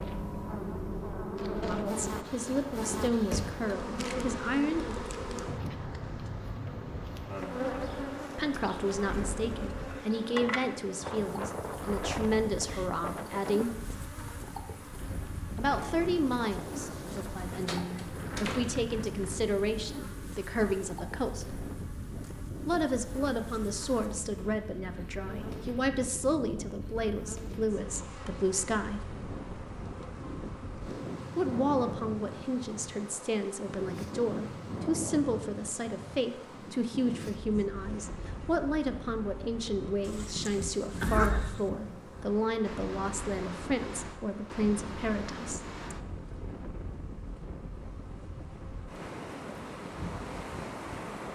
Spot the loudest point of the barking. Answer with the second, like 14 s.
41 s.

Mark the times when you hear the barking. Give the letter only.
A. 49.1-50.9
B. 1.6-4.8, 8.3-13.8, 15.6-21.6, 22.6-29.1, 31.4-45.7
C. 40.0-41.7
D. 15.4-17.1
C.